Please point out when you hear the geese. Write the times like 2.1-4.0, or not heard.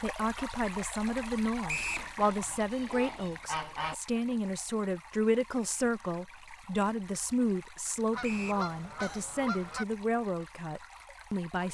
1.9-4.0, 8.1-9.8.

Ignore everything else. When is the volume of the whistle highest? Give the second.
2 s.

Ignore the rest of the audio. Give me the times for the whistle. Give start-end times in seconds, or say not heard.
1.6-2.1, 8.2-8.7.